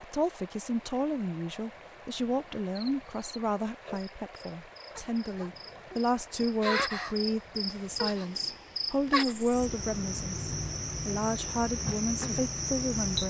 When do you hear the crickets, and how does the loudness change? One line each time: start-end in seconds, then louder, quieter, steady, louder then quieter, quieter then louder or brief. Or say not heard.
2.8-13.2 louder.